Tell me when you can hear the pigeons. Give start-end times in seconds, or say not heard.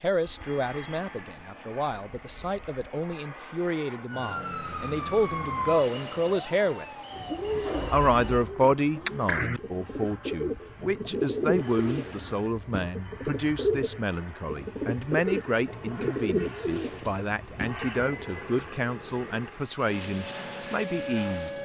7.1-18.1.